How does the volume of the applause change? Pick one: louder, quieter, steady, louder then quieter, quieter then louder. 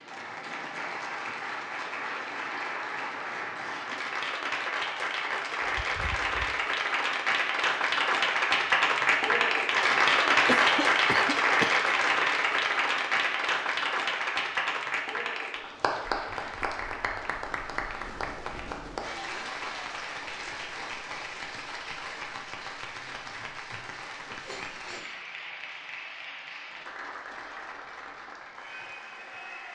louder then quieter.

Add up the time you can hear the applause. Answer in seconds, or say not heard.
30 s.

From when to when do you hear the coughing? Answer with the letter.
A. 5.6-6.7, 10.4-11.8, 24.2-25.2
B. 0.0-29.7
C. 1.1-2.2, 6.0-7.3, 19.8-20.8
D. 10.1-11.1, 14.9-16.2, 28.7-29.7
A.